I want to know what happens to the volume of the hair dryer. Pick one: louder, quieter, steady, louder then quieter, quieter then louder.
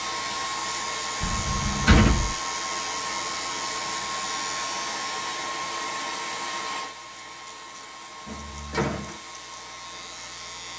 quieter.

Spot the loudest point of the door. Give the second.
2 s.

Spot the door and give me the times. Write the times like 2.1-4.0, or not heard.
1.2-2.4, 8.2-9.2.